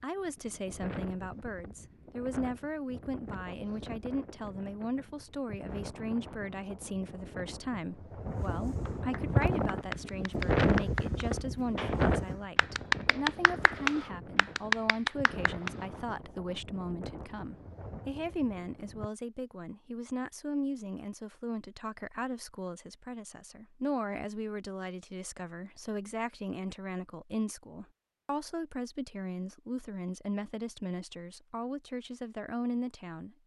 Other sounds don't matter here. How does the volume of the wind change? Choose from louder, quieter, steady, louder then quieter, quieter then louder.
louder then quieter.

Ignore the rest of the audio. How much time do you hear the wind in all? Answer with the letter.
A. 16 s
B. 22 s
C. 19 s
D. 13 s
C.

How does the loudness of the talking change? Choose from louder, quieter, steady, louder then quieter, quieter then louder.
steady.